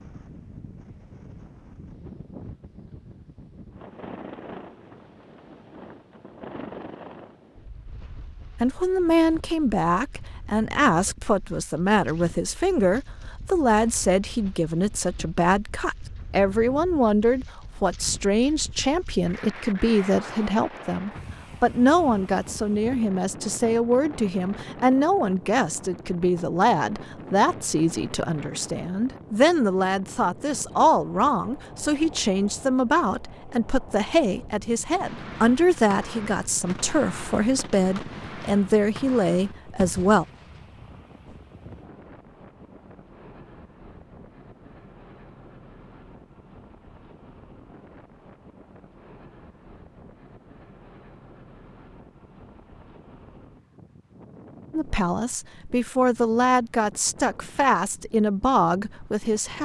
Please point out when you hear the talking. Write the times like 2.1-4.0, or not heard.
8.6-40.2, 54.7-59.5.